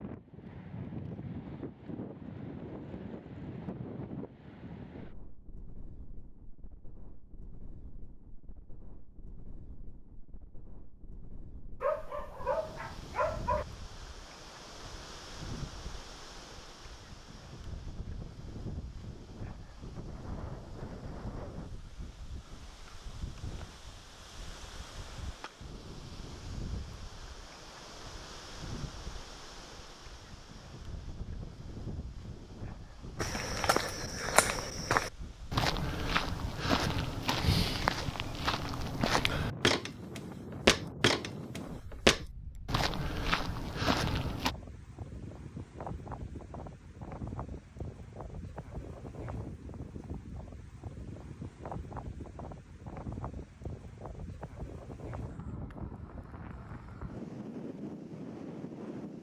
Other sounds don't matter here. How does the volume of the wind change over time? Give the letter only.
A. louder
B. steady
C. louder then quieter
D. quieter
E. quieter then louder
B.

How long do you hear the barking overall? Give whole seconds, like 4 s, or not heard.
2 s.